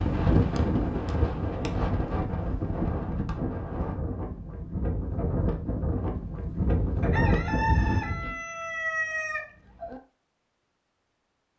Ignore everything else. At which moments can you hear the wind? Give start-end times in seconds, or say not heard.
0.0-8.3.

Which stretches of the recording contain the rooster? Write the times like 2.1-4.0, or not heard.
7.0-10.0.